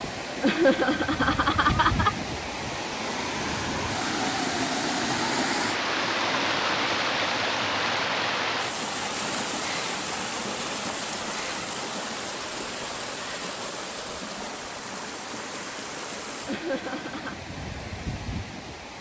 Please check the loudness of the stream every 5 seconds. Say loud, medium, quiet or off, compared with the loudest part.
loud, loud, medium, medium.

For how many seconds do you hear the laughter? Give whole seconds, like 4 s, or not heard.
3 s.